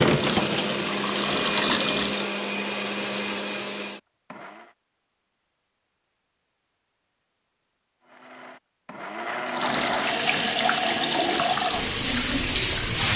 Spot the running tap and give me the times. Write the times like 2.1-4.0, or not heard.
0.0-2.2, 9.4-13.1.